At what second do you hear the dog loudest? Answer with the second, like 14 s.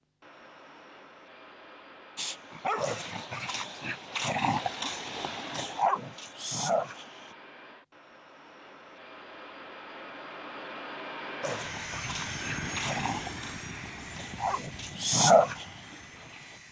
15 s.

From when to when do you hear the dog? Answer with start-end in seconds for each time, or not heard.
2.1-7.3, 11.4-16.6.